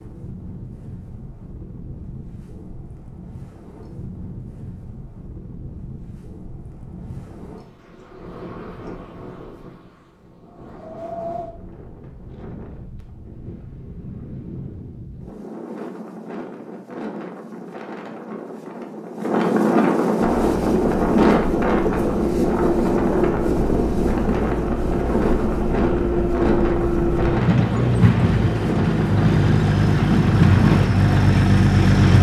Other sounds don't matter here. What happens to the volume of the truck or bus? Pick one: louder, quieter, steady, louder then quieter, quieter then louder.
louder.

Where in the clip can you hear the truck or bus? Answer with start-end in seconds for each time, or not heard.
20.2-32.1.